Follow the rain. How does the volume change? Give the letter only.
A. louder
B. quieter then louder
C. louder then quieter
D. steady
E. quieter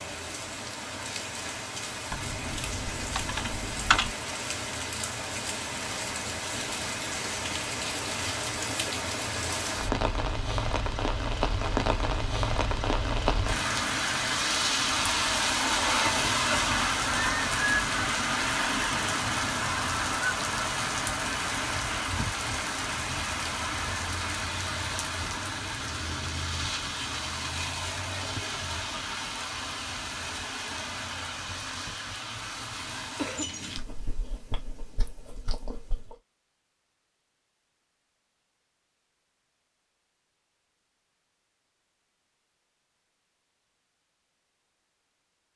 C.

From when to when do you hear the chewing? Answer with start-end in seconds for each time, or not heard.
33.8-36.1.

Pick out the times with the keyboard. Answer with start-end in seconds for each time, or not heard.
2.1-4.1.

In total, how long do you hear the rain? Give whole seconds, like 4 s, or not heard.
34 s.